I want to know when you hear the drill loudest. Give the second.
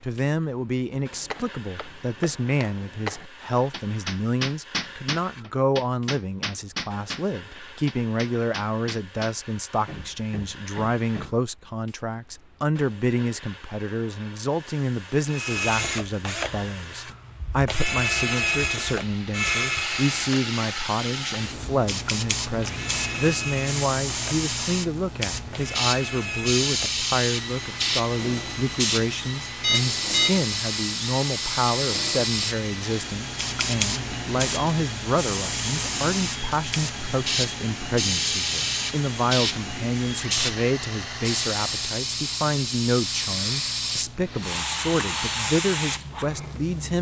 18 s.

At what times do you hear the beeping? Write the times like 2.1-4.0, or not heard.
29.6-30.4.